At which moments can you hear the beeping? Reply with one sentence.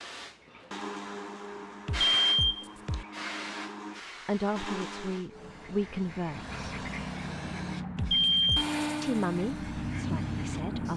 The beeping can be heard from 1.9 to 3.0 s and from 8.0 to 8.8 s.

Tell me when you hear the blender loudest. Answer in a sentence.
The loudest moment of the blender is at 9 seconds.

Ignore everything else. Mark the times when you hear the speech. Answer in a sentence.
You can hear the speech from 4.2 to 6.6 s and from 9.0 to 10.9 s.